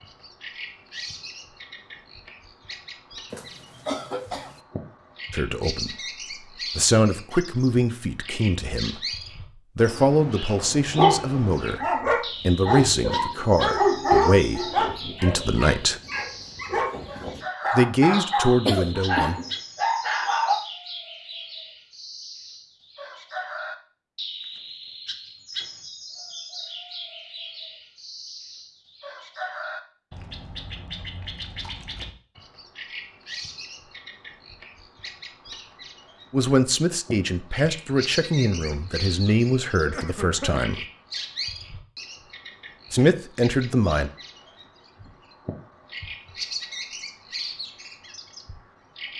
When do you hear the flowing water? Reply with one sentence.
The flowing water can't be heard in this clip.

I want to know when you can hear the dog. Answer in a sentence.
You can hear the dog from 10.5 to 20.6 s.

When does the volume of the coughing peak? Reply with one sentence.
The loudest moment of the coughing is at 19 seconds.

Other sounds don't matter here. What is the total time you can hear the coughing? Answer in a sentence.
The coughing can be heard for 4 seconds in total.